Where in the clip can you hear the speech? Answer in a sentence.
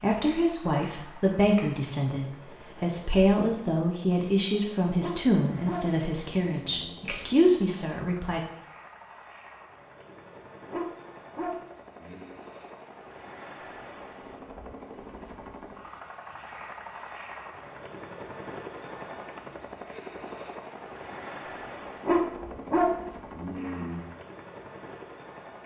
The speech can be heard from 0.0 to 8.4 s.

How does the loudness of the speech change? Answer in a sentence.
The volume of the speech stays about the same.